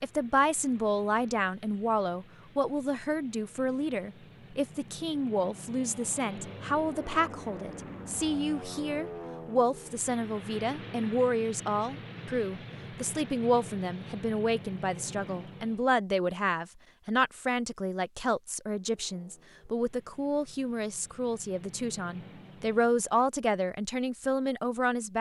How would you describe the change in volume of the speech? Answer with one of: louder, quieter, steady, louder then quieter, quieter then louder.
steady.